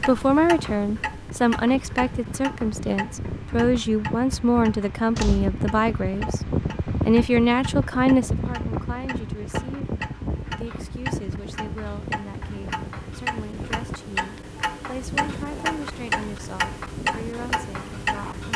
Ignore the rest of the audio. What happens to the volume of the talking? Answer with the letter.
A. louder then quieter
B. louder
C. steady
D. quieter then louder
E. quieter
E.